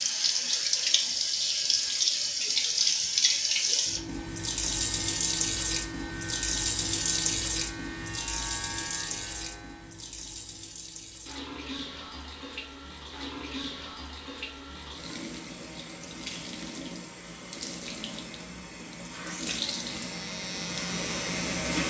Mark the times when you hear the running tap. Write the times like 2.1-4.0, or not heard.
0.0-21.8.